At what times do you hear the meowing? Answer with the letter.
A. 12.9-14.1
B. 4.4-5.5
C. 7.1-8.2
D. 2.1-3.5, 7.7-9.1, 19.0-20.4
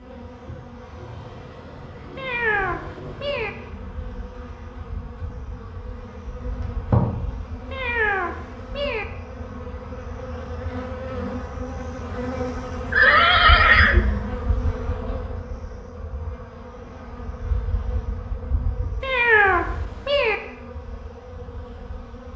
D.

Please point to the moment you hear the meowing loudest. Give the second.
19 s.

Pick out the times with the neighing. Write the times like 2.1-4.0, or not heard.
12.9-14.1.